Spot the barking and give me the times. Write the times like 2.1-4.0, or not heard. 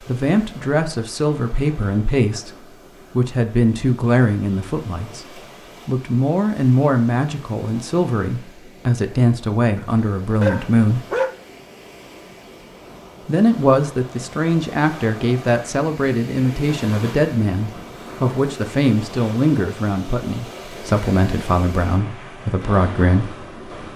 9.8-11.3.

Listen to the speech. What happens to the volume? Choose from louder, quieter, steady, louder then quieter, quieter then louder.
steady.